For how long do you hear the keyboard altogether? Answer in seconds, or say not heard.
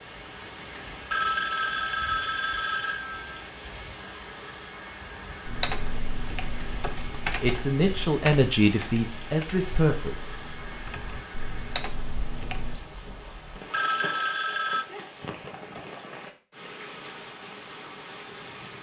7 s.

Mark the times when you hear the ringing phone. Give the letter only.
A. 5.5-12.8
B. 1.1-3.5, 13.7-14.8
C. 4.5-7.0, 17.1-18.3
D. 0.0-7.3
B.